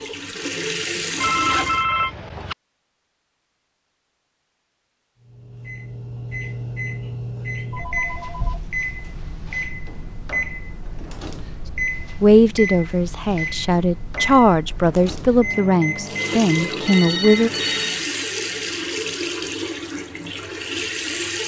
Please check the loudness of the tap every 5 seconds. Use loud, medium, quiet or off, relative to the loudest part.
loud, off, off, loud, loud.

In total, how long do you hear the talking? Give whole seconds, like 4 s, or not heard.
5 s.